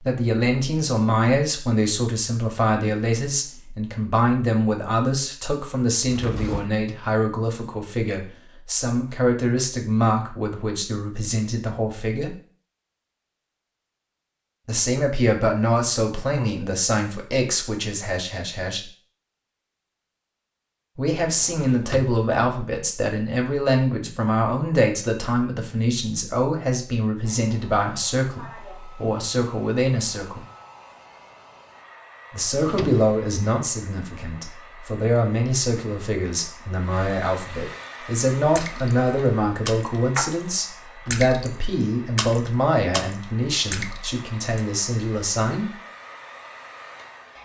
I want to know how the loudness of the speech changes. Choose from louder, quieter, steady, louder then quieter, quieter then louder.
steady.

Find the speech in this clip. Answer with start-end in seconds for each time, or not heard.
0.0-12.3, 14.7-18.9, 20.9-30.4, 32.3-45.8.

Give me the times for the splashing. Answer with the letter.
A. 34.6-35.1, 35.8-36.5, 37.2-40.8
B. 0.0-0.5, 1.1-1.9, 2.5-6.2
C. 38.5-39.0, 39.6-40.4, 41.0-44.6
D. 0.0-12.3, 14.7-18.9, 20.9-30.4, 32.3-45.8
C.